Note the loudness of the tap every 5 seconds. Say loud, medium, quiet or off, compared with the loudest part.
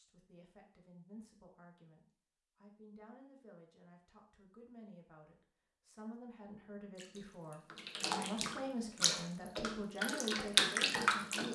off, medium, loud.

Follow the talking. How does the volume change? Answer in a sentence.
The volume of the talking goes up.